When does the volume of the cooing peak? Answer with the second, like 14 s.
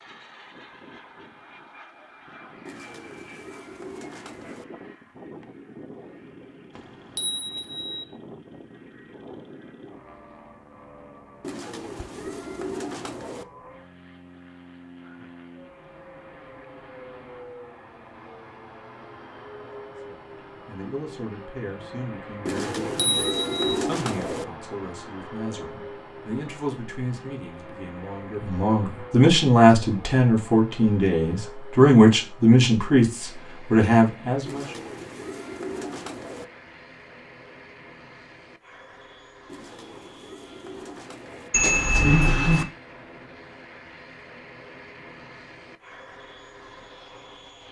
24 s.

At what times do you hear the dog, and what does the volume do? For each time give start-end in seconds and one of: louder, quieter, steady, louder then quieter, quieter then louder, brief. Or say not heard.
not heard.